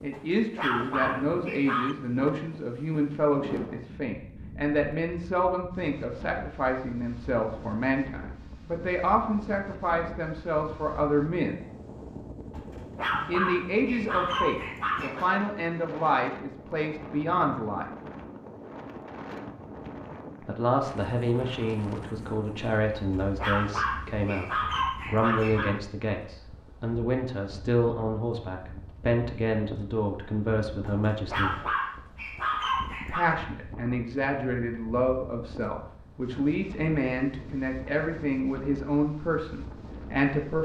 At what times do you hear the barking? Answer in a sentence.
The barking can be heard from 0.1 to 1.9 s, from 12.5 to 15.2 s, from 22.9 to 25.8 s and from 30.9 to 33.4 s.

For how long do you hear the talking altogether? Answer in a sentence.
The talking can be heard for 35 seconds in total.